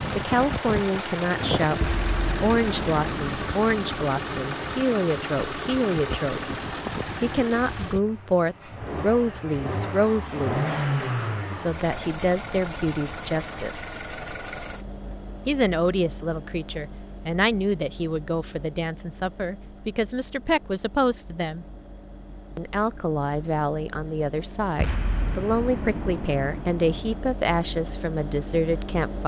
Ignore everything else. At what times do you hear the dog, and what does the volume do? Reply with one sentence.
You can't hear the dog here.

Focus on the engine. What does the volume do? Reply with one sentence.
The volume of the engine goes down, then up.